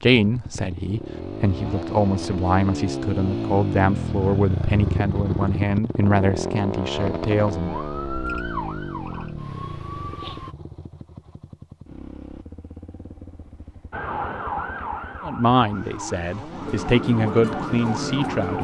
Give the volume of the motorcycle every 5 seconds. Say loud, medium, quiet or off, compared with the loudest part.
loud, loud, quiet, quiet.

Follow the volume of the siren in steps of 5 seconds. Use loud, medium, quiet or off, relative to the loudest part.
off, medium, loud, loud.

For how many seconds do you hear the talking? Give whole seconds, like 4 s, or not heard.
11 s.